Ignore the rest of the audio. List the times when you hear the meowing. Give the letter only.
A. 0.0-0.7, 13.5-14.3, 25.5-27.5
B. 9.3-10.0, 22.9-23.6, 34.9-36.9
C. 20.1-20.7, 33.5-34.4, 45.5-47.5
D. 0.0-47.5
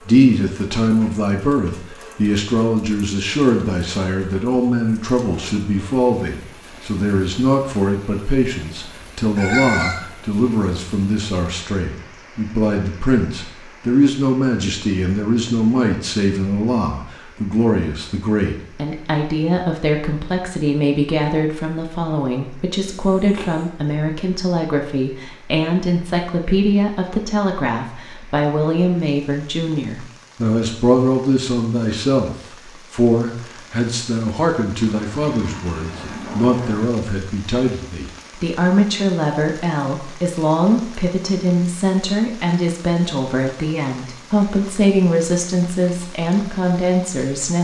B.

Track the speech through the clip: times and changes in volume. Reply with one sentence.
The speech can be heard from 0.0 to 47.5 s, at a steady volume.